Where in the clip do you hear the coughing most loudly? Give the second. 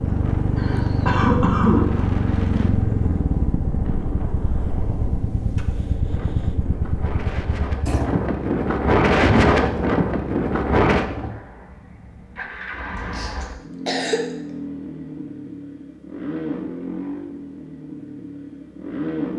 2 s.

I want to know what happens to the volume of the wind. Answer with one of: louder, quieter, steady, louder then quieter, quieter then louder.
quieter then louder.